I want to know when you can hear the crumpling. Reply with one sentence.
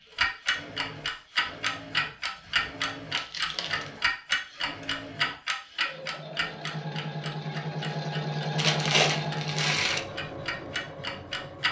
The crumpling can be heard from 3.1 to 3.9 s and from 8.6 to 10.0 s.